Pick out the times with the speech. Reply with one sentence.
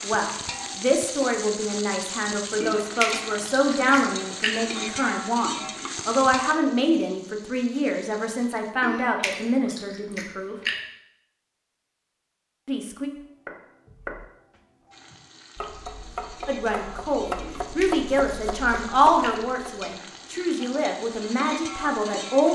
You can hear the speech from 0.0 to 10.6 s, from 12.7 to 13.1 s and from 16.4 to 22.5 s.